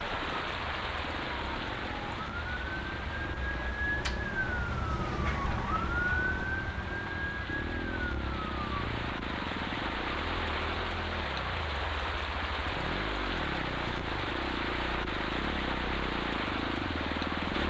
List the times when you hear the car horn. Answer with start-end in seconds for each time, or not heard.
not heard.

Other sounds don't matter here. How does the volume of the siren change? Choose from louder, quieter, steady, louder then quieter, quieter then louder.
louder then quieter.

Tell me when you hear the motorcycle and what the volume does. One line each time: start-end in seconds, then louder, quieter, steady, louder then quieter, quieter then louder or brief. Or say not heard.
0.0-17.6 louder.